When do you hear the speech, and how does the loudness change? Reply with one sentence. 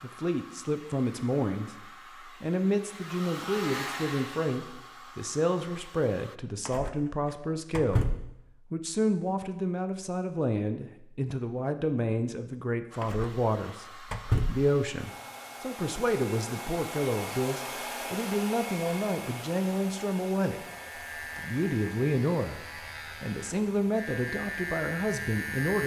You can hear the speech from 0.0 to 20.6 s, at a steady volume; briefly from 21.4 to 22.6 s; and briefly from 23.2 to 25.8 s.